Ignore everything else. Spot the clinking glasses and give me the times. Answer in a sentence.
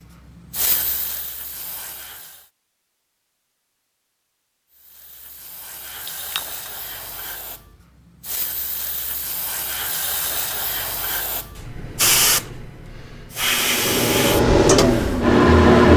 You can hear the clinking glasses from 6.0 to 6.5 s.